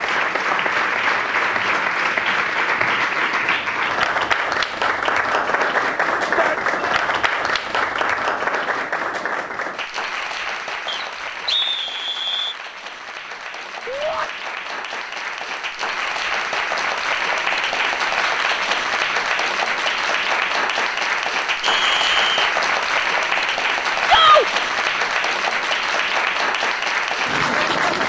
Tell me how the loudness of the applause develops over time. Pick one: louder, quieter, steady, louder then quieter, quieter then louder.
quieter then louder.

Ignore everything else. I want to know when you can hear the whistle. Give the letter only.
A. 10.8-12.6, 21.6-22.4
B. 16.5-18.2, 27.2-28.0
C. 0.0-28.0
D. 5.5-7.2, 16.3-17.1
A.